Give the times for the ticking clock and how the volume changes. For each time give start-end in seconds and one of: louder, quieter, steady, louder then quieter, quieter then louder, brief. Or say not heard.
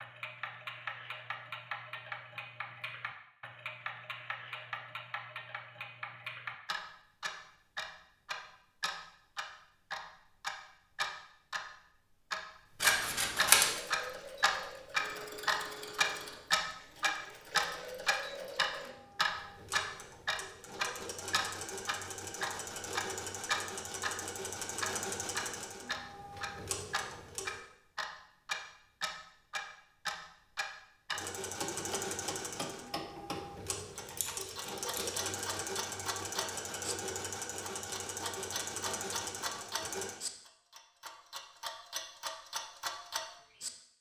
0.0-43.9 louder then quieter.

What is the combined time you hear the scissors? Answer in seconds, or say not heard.
2 s.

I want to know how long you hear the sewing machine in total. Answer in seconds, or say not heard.
23 s.